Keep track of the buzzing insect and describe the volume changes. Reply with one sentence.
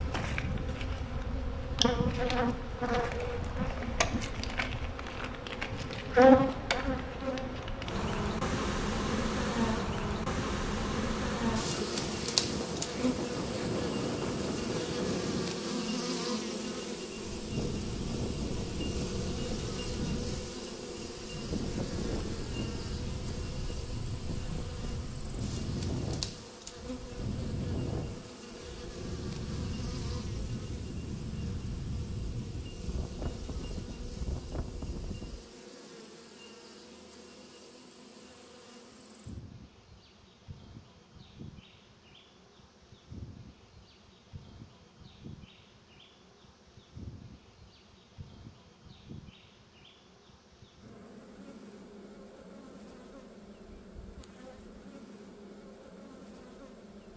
The loudness of the buzzing insect goes down.